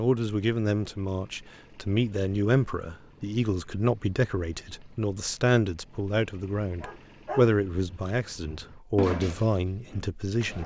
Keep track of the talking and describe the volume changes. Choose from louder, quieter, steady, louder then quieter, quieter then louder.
steady.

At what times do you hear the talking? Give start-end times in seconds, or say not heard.
0.0-10.6.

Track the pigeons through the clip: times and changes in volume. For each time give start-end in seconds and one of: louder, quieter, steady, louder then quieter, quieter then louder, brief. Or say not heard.
not heard.